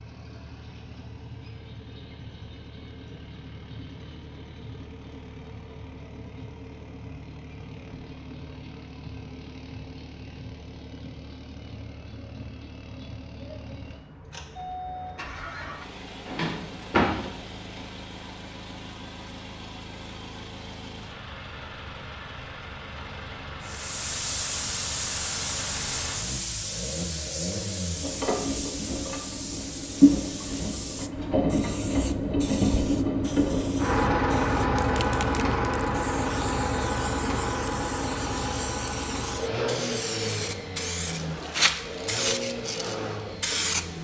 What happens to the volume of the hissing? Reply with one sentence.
The loudness of the hissing goes down, then up.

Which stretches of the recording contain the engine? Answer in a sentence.
The engine can be heard from 0.0 to 43.9 s.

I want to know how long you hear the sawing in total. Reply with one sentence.
You can't hear the sawing here.